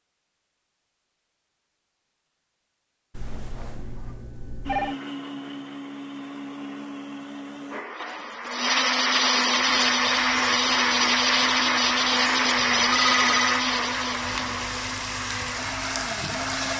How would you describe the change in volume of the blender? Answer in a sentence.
The volume of the blender goes up, then down.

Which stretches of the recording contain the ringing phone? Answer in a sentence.
You can hear the ringing phone from 3.1 to 5.0 s and from 12.6 to 13.5 s.